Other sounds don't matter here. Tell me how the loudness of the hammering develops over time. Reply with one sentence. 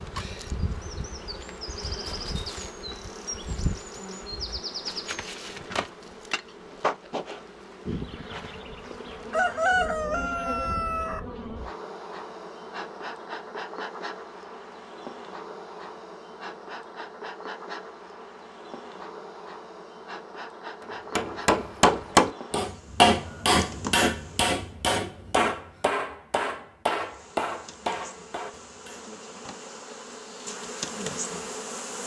The loudness of the hammering goes down.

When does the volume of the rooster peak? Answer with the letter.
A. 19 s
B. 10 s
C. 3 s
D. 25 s
B.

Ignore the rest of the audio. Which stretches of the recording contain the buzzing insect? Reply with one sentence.
The buzzing insect can be heard from 0.0 to 24.6 s and from 26.9 to 32.0 s.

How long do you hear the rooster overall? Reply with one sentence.
The rooster can be heard for 2 seconds in total.